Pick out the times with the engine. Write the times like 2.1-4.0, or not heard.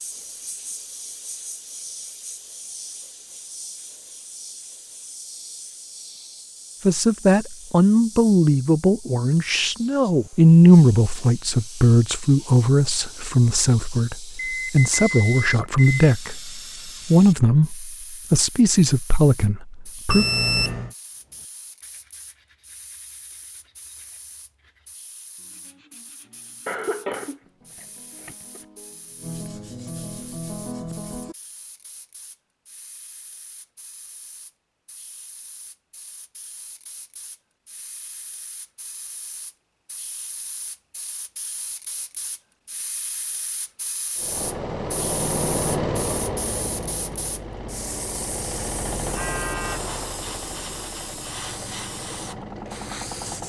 44.1-53.4.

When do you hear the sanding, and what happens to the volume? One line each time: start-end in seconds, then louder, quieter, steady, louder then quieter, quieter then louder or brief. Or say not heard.
21.1-31.4 louder.